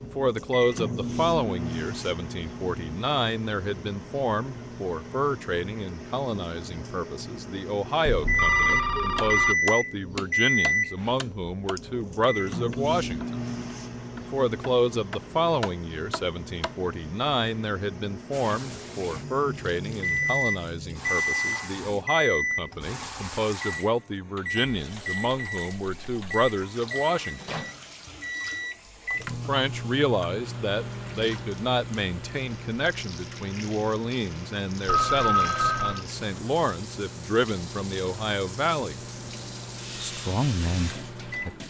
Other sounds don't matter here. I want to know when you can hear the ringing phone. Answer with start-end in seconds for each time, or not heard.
8.1-9.6, 34.9-36.0.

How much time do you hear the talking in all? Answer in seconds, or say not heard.
38 s.